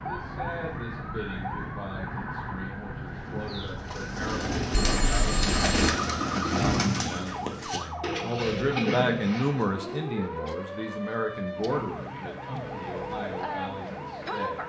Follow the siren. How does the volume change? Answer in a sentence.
The loudness of the siren stays about the same.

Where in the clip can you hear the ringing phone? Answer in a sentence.
The ringing phone can be heard from 4.7 to 5.9 s.